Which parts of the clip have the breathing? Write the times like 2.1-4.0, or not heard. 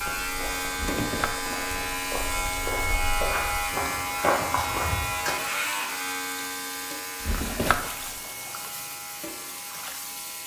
not heard.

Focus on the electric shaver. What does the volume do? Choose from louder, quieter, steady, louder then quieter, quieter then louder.
quieter.